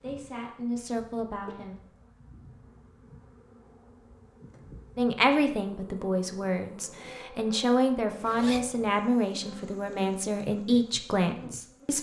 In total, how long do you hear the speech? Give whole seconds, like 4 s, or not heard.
9 s.